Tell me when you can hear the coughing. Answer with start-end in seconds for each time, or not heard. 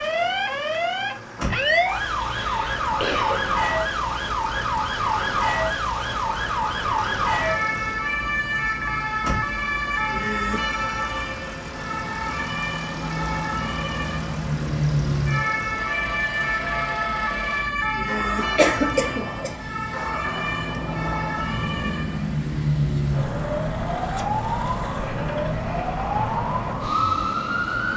2.4-3.4, 18.4-20.1.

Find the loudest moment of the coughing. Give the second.
19 s.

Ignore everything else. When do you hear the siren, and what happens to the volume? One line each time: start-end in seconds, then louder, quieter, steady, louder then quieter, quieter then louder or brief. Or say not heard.
0.0-27.9 steady.